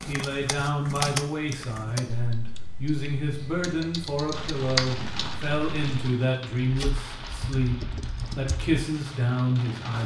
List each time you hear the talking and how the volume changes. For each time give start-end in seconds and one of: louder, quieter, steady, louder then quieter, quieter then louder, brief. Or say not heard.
0.1-10.0 steady.